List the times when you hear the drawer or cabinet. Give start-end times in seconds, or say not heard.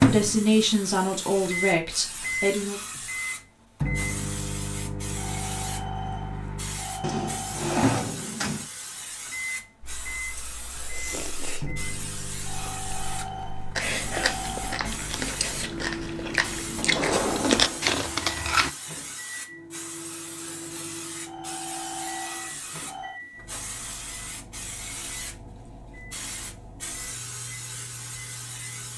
7.0-8.7, 16.8-17.9.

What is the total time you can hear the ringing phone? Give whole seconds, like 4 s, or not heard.
7 s.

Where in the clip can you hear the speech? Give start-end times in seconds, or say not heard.
0.0-2.8.